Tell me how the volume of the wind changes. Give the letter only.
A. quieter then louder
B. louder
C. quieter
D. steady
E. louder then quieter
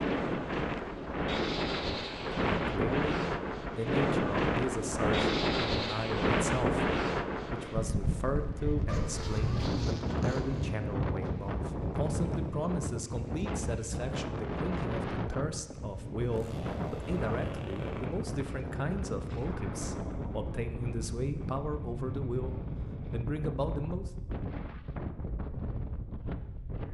C.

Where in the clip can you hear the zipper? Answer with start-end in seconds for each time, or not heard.
8.8-10.8, 16.3-18.1.